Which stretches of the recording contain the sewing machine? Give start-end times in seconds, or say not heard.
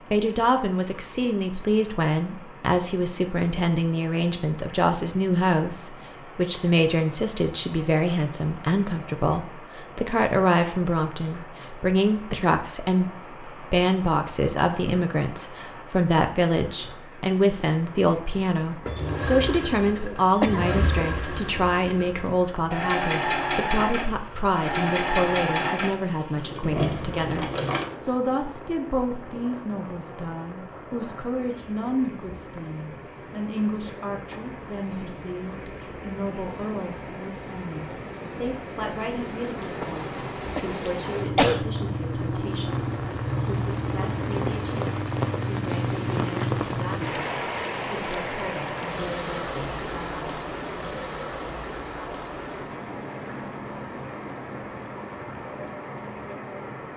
18.8-27.9.